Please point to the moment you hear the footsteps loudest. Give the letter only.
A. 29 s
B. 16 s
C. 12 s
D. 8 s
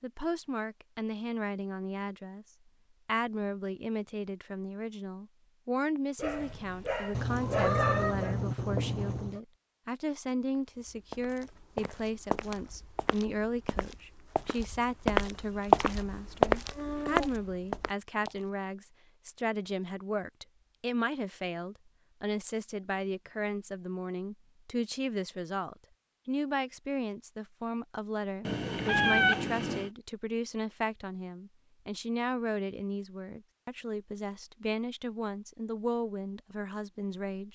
B.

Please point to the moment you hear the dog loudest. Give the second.
8 s.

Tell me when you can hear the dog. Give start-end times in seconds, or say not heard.
6.2-8.3.